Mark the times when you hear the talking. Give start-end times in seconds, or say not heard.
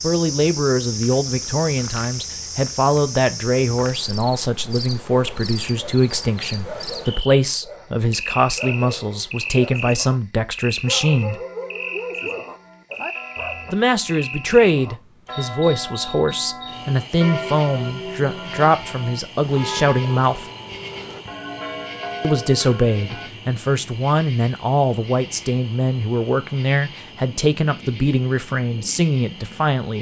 0.0-11.4, 13.7-20.4, 22.2-29.9.